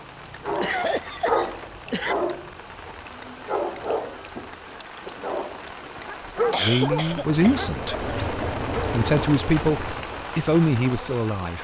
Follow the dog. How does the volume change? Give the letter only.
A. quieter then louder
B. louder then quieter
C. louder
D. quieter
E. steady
A.